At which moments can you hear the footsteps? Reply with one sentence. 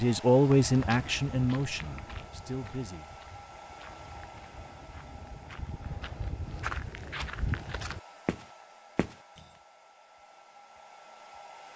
You can hear the footsteps from 0.5 to 9.4 s.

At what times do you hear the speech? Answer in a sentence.
The speech can be heard from 0.0 to 3.1 s.